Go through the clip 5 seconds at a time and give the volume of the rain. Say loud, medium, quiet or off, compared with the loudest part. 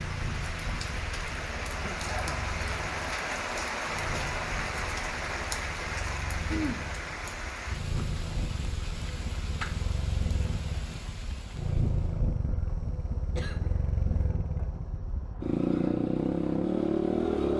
loud, loud, quiet, off.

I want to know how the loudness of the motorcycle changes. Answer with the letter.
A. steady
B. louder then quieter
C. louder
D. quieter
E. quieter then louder
C.